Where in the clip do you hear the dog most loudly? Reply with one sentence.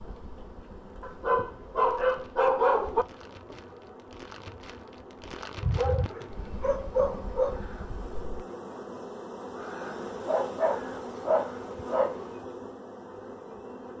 The loudest moment of the dog is at 3 seconds.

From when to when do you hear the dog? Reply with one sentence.
The dog can be heard from 1.0 to 3.0 s, from 5.6 to 7.6 s and from 9.8 to 12.2 s.